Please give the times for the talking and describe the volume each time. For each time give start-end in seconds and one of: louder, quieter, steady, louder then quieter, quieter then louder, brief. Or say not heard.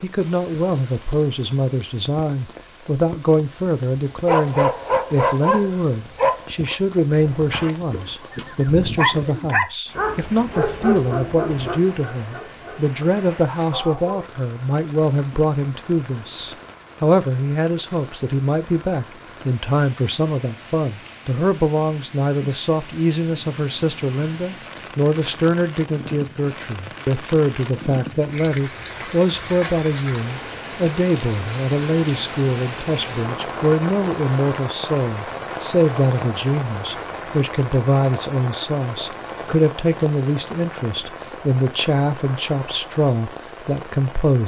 0.0-44.4 steady.